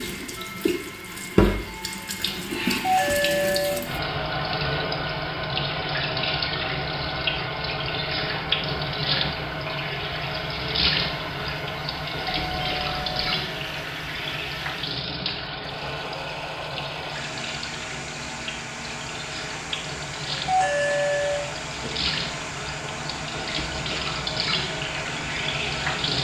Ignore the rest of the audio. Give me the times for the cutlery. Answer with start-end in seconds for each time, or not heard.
not heard.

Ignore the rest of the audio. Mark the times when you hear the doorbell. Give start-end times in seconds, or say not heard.
2.8-3.8, 12.3-13.3, 20.4-21.9.